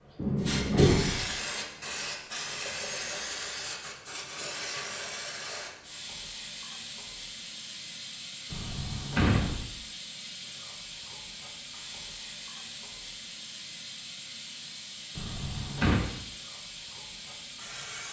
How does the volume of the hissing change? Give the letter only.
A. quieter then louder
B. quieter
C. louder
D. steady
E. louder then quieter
B.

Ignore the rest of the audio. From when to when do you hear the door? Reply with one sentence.
The door can be heard from 0.1 to 1.3 s, from 8.5 to 9.7 s and from 15.2 to 16.1 s.